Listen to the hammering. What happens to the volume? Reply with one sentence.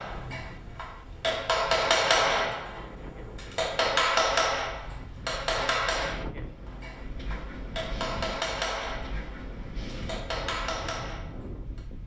The loudness of the hammering goes down.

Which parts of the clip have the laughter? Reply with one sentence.
You can't hear the laughter here.